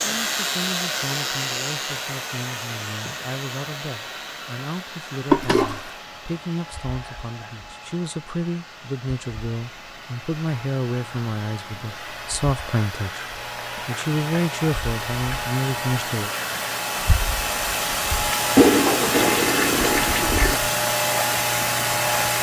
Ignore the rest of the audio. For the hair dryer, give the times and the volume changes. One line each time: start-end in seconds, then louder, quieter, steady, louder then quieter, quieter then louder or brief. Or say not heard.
0.0-22.3 quieter then louder.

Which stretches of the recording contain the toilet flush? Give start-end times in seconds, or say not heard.
5.3-5.8, 18.6-20.6.